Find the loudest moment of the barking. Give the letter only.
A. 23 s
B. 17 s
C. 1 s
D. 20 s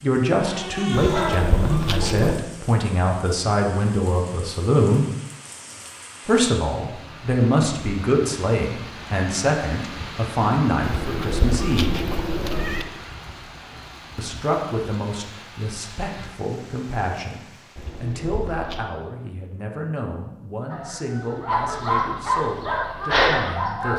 A.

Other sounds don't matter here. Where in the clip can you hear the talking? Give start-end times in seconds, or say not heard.
0.0-5.0, 6.2-11.9, 14.2-23.9.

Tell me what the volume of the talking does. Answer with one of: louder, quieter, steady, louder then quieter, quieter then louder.
quieter.